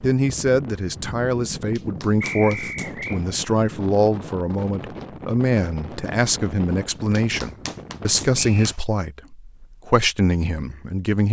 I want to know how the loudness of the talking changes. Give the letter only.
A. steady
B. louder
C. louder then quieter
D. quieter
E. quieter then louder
A.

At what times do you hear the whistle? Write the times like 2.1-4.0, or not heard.
2.2-3.2, 8.3-8.8.